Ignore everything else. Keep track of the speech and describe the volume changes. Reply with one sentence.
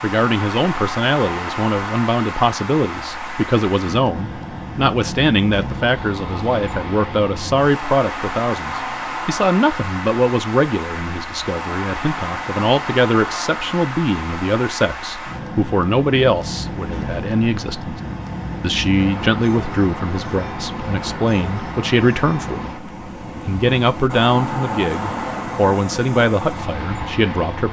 The volume of the speech stays about the same.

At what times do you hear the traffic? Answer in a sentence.
The traffic can be heard from 0.0 to 27.6 s.